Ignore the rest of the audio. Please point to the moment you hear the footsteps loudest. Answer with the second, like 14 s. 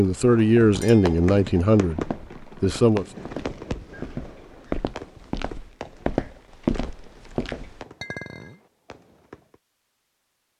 7 s.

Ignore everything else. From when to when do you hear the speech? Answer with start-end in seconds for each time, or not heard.
0.0-3.0.